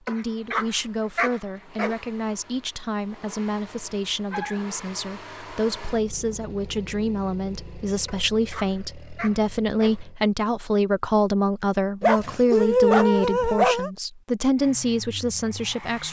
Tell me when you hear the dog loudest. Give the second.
13 s.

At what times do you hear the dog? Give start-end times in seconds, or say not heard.
0.1-1.9, 4.3-4.7, 8.1-10.0, 12.0-13.9.